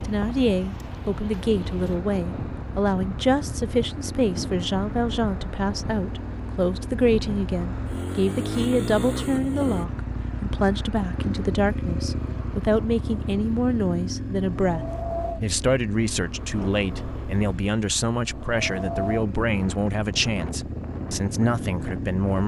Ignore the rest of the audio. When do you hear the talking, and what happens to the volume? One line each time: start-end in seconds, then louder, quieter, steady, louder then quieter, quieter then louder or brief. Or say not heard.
0.1-22.4 steady.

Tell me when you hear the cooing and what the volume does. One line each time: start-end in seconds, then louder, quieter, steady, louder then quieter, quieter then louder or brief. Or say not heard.
not heard.